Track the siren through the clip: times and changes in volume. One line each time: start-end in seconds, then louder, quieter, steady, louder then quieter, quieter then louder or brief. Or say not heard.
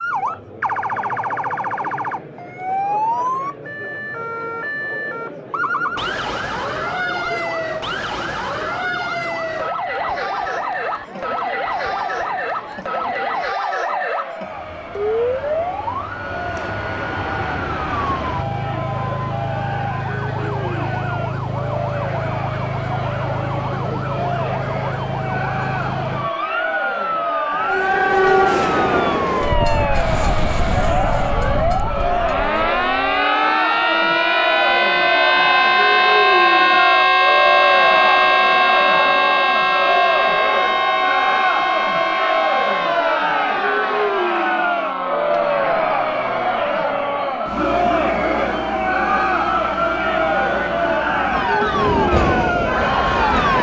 0.0-53.5 louder then quieter.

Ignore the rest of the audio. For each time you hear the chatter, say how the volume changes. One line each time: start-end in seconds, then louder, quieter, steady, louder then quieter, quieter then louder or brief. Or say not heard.
0.0-53.5 louder.